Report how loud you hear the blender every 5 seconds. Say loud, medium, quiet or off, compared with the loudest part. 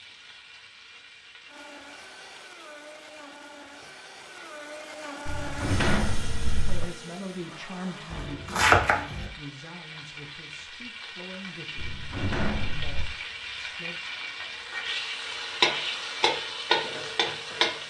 medium, loud, off, off.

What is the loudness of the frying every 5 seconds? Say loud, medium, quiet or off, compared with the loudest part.
quiet, quiet, medium, loud.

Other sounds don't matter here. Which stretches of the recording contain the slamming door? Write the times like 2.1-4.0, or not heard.
5.2-6.8, 11.8-13.1.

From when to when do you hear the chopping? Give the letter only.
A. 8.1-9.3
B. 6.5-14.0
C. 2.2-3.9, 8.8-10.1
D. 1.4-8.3
A.